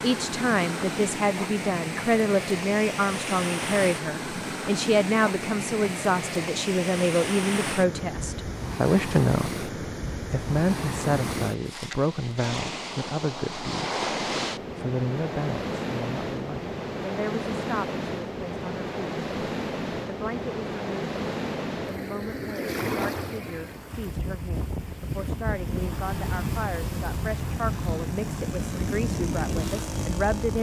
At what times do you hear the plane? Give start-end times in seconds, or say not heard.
25.4-30.5.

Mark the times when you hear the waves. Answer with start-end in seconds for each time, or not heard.
0.0-30.5.